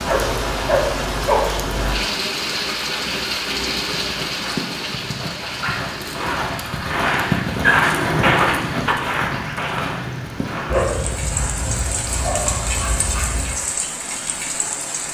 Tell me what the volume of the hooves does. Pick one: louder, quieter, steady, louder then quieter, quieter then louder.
louder then quieter.